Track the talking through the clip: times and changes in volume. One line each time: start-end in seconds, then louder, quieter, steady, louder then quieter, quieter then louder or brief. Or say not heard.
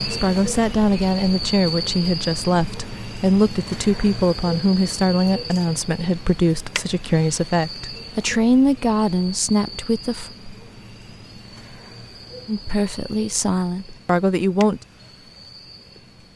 0.0-10.3 steady
12.4-14.8 brief.